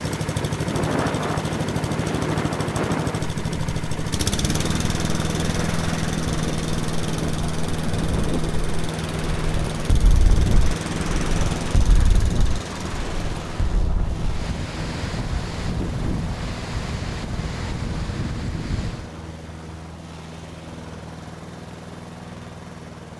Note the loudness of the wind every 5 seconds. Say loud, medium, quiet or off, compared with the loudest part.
loud, loud, loud, loud, off.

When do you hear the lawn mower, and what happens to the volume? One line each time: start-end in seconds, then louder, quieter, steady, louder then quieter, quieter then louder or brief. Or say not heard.
0.0-23.1 quieter.